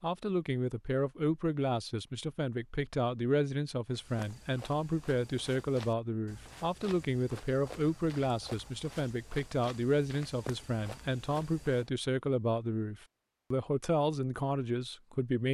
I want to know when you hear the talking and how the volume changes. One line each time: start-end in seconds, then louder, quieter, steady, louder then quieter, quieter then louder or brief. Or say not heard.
0.0-15.4 steady.